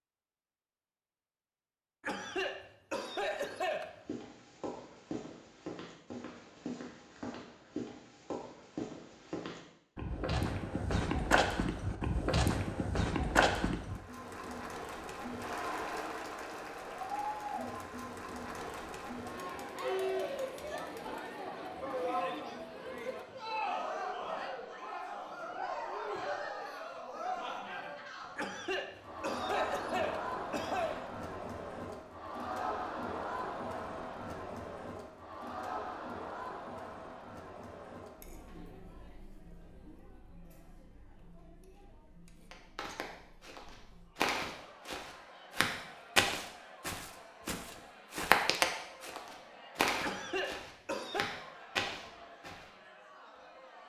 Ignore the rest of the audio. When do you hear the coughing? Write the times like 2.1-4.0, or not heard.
2.0-4.0, 28.4-31.1, 50.0-51.2.